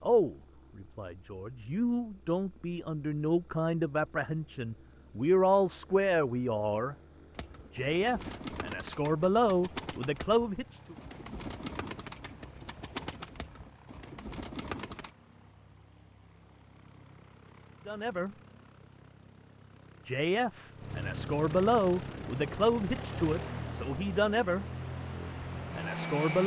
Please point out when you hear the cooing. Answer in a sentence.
The cooing can be heard from 7.3 to 15.1 s.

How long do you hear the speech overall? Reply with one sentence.
You can hear the speech for 16 seconds altogether.